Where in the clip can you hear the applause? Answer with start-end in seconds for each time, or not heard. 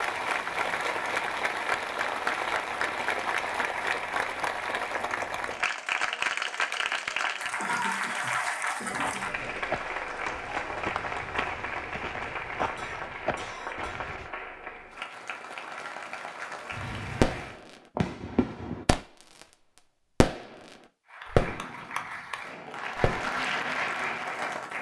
0.0-17.6, 21.1-24.7.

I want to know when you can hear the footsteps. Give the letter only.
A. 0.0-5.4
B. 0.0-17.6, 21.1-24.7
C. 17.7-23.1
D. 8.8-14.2
D.